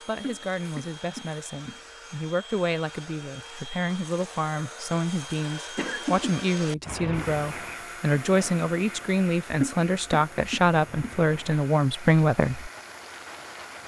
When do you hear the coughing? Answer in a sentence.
The coughing can be heard from 0.2 to 1.8 s, from 5.8 to 6.3 s and from 9.6 to 11.2 s.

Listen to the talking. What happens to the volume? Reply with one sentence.
The loudness of the talking goes up.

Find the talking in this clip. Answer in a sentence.
The talking can be heard from 0.1 to 12.7 s.